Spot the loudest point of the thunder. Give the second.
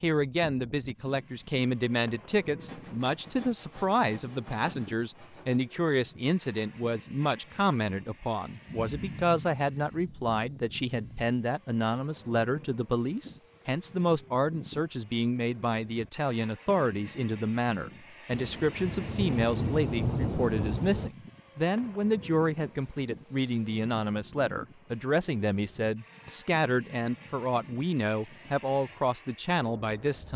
20 s.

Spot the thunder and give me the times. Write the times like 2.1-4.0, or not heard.
8.7-11.3, 18.3-21.1.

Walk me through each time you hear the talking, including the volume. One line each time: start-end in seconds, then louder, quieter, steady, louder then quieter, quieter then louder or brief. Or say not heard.
0.0-30.3 steady.